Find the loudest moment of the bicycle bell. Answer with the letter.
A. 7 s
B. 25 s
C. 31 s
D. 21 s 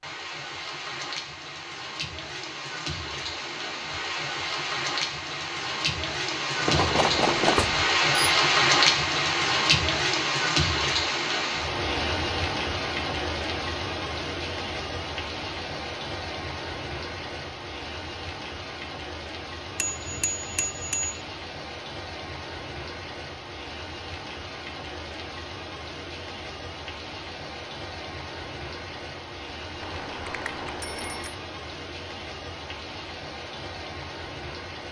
A.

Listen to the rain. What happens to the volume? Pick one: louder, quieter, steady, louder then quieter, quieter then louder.
louder then quieter.